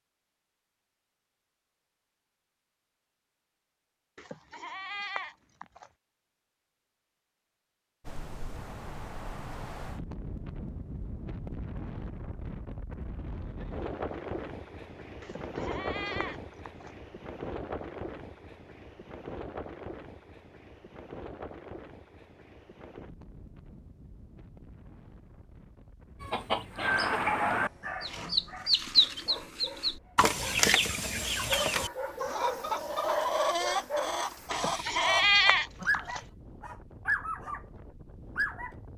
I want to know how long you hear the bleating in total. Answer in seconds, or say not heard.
5 s.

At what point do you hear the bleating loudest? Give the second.
35 s.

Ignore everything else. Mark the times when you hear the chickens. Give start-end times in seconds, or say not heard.
26.2-36.3.